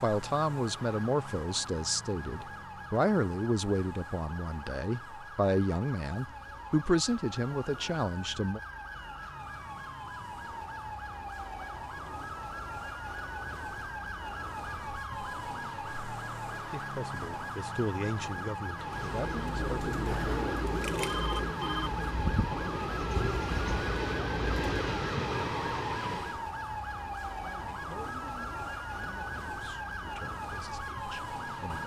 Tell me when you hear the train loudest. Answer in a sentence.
The loudest moment of the train is at 25 seconds.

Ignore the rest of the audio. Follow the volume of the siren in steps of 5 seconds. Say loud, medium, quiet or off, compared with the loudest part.
medium, medium, loud, loud, loud, loud, loud.